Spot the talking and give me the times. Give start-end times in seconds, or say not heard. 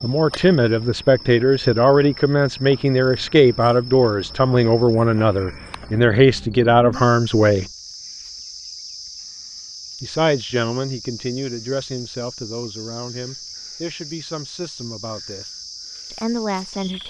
0.0-7.7, 10.0-15.4, 16.1-17.0.